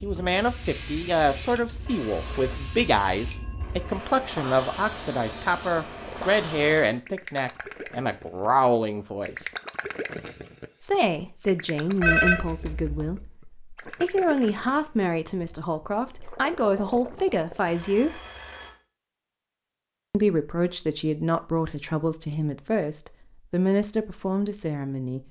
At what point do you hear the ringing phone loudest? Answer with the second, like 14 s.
12 s.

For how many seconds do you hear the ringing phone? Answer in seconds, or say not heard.
5 s.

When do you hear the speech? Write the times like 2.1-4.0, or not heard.
0.0-9.5, 10.8-18.2, 20.1-25.2.